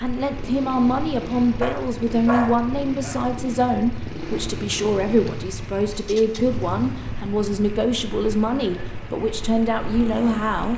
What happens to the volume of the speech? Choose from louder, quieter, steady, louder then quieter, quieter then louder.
steady.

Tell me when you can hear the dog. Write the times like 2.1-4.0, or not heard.
1.6-3.2.